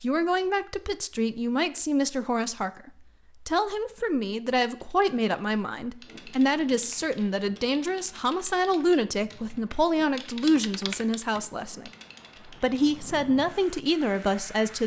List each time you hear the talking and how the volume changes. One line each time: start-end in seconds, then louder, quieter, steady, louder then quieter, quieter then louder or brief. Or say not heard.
0.0-14.8 steady.